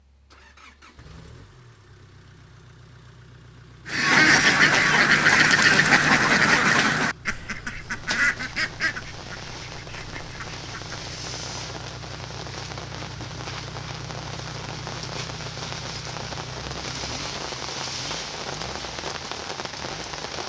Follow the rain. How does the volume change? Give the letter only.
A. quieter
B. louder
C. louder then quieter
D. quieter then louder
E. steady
B.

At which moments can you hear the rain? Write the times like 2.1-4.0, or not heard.
7.8-20.4.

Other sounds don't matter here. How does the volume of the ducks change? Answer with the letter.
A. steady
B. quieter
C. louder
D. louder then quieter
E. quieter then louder
B.